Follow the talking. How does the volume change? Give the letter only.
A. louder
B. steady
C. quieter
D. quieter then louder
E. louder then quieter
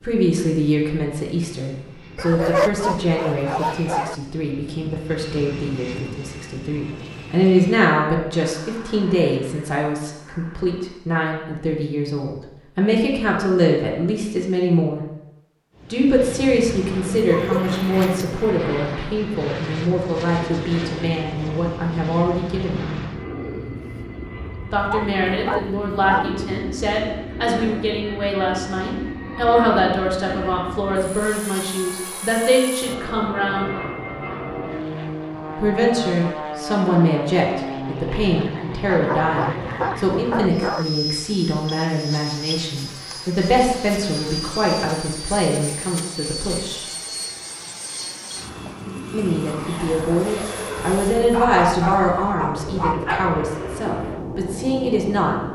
B.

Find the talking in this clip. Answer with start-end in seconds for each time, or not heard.
0.0-15.1, 15.9-23.0, 24.7-33.6, 35.5-46.9, 49.1-55.4.